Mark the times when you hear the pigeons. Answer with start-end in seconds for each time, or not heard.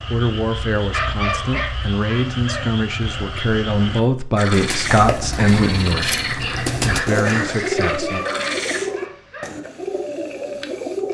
4.5-11.0.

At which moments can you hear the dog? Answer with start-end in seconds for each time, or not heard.
0.9-2.8, 7.8-9.5.